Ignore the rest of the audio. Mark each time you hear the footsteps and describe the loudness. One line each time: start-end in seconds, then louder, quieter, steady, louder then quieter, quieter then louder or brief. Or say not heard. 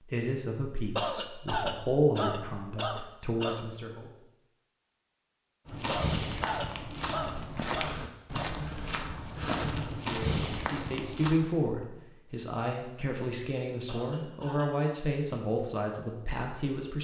5.7-11.3 steady.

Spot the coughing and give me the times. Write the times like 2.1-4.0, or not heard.
0.9-3.6, 5.8-8.5, 13.8-14.7.